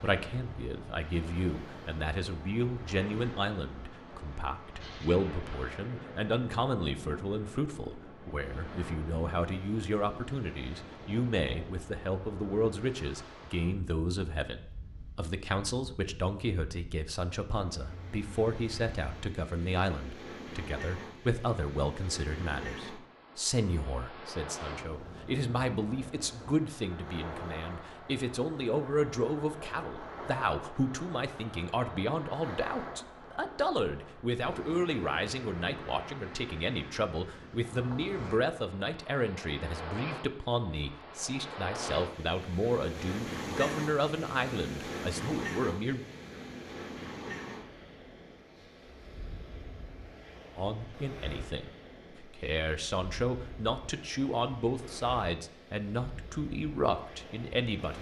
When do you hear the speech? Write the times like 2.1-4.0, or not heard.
0.0-46.0, 50.5-57.9.